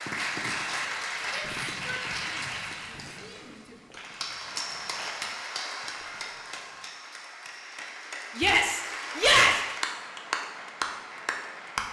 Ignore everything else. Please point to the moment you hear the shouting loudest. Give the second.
9 s.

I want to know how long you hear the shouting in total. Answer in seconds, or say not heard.
4 s.